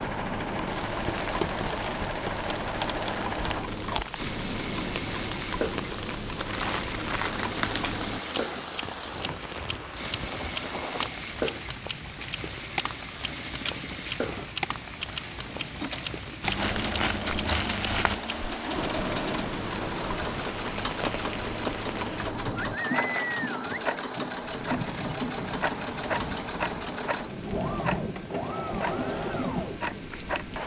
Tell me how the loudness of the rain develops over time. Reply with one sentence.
The loudness of the rain stays about the same.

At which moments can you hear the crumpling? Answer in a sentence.
The crumpling can be heard from 6.4 to 8.0 s, from 16.4 to 18.2 s and from 22.9 to 23.4 s.